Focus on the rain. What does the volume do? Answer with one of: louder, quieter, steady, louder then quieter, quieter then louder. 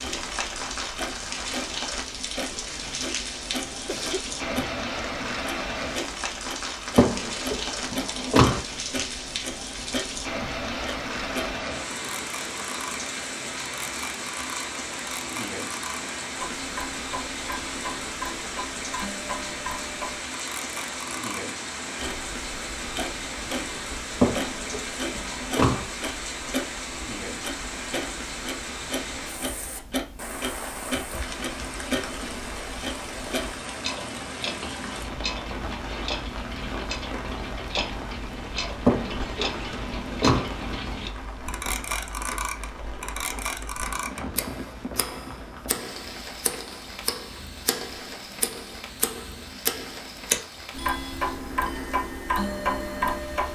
quieter.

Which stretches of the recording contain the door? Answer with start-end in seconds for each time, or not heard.
7.0-8.6, 24.2-25.9, 38.9-40.5.